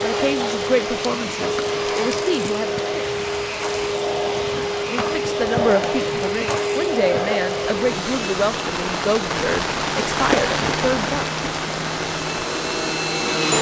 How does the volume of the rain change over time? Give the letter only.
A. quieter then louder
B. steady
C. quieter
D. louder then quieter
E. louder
E.